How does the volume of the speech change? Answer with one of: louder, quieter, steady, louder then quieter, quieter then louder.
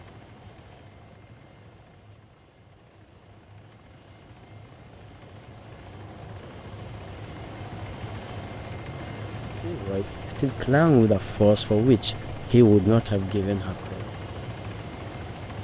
louder then quieter.